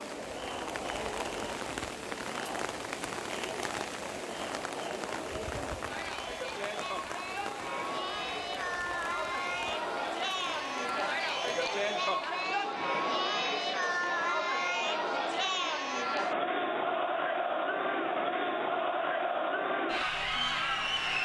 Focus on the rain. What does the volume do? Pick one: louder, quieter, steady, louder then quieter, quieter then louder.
quieter.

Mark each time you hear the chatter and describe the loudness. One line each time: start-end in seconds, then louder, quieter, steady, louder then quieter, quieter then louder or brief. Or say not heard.
0.0-21.2 louder.